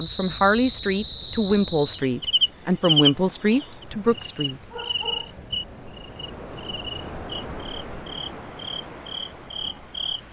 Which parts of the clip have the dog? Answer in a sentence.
You can hear the dog from 4.7 to 5.5 s.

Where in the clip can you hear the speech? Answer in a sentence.
You can hear the speech from 0.0 to 4.6 s.